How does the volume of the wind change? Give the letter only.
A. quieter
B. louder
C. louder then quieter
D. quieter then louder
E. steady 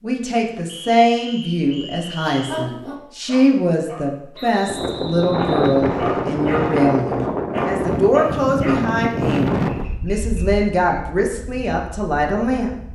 A.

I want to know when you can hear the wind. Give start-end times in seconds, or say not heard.
4.7-12.9.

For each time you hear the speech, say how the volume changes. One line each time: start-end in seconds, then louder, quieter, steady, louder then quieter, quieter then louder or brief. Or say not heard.
0.0-12.7 steady.